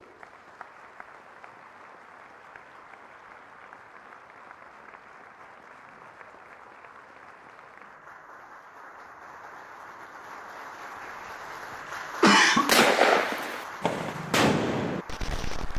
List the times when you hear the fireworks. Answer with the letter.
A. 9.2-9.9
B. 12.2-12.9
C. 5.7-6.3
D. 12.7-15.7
D.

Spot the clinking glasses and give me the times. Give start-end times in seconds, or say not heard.
not heard.